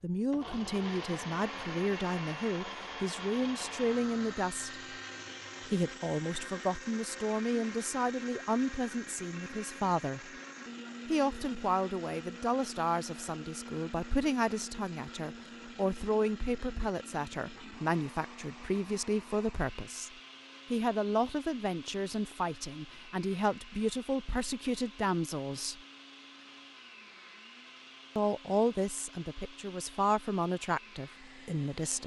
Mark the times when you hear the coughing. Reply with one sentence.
You can't hear the coughing here.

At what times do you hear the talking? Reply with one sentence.
You can hear the talking from 0.0 to 4.8 s, from 5.7 to 10.3 s, from 11.1 to 20.1 s, from 20.7 to 25.8 s and from 28.1 to 32.0 s.